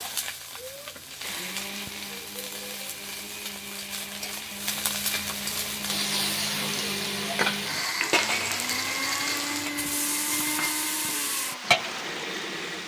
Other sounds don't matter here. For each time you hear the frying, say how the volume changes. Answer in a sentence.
The frying can be heard from 0.0 to 12.8 s, getting louder.